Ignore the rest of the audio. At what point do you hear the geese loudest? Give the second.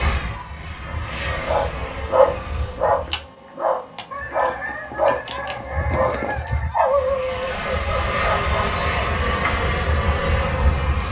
6 s.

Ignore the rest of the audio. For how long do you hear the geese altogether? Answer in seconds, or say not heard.
3 s.